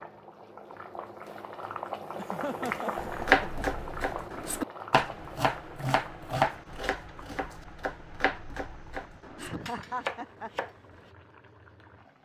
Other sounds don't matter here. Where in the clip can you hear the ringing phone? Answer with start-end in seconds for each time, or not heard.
not heard.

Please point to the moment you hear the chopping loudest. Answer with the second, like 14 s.
3 s.